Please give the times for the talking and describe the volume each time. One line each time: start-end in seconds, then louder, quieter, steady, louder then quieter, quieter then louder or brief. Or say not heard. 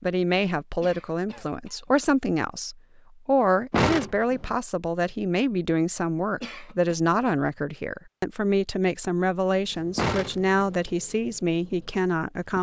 0.0-12.5 steady.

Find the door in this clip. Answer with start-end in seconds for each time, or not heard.
3.7-4.5, 9.9-10.8.